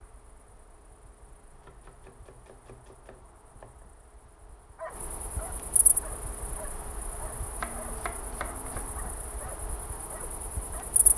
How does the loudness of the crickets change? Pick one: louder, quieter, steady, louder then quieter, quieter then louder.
louder.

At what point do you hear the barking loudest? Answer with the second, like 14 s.
5 s.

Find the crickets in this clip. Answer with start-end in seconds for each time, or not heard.
0.0-11.1.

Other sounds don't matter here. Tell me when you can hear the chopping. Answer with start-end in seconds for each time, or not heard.
1.5-3.9, 7.6-9.1.